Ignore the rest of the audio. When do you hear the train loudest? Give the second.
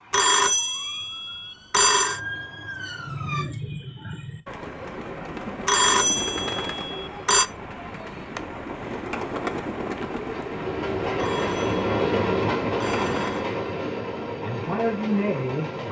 12 s.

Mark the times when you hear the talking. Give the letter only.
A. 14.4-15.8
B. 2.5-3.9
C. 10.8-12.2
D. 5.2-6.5
A.